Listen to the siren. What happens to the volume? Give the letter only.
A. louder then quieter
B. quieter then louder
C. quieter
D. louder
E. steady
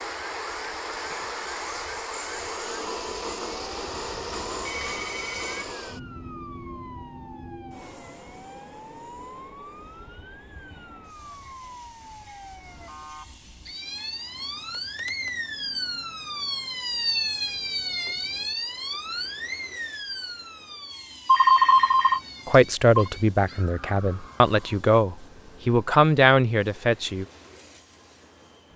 A.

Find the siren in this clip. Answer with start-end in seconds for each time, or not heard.
0.0-24.8.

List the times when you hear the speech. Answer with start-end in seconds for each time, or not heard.
22.4-27.2.